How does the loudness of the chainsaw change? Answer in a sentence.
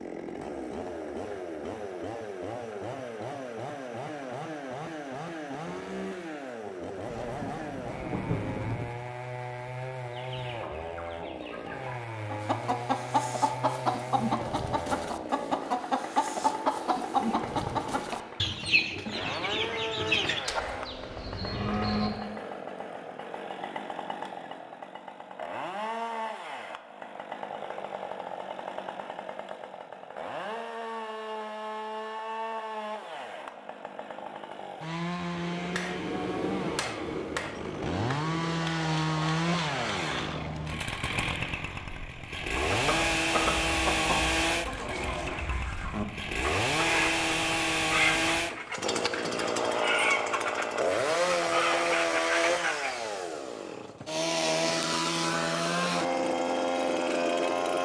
The loudness of the chainsaw goes up.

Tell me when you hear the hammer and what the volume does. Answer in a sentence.
The hammer can be heard from 35.4 to 40.9 s, getting quieter.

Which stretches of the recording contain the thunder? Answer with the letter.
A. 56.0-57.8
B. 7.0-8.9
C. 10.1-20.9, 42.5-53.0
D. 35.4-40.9
B.